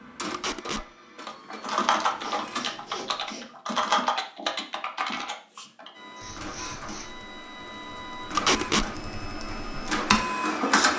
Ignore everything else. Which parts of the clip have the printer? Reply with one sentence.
The printer can be heard from 0.0 to 2.6 s and from 6.0 to 10.9 s.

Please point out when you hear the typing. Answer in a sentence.
You can hear the typing from 1.1 to 10.2 s.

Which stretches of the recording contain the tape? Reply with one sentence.
You can hear the tape from 0.3 to 0.8 s and from 8.3 to 8.8 s.